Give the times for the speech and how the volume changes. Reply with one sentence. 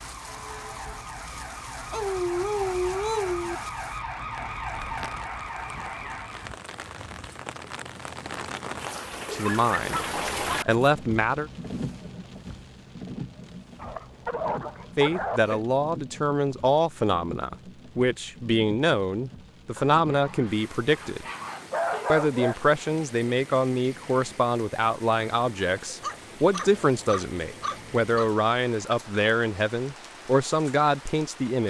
You can hear the speech briefly from 9.3 to 10.0 s; briefly from 10.7 to 11.5 s; from 14.9 to 21.2 s, at a steady volume; and from 22.1 to 31.6 s, at a steady volume.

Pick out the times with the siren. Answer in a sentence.
The siren can be heard from 0.0 to 6.6 s.